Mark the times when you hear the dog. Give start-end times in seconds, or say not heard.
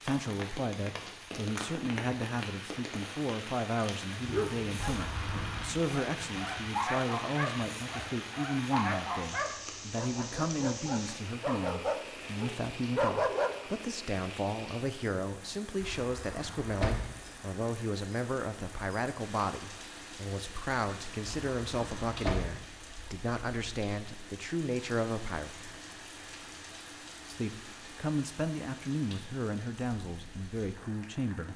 4.2-13.6.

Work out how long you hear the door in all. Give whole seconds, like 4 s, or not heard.
4 s.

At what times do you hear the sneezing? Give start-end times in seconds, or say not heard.
not heard.